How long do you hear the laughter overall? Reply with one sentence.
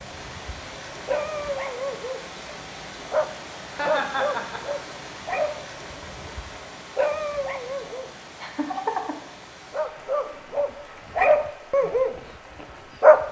The laughter can be heard for 2 seconds in total.